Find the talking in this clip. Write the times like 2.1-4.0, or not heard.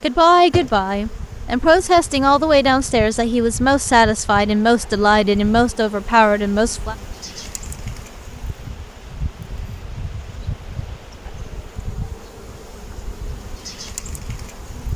0.0-7.0.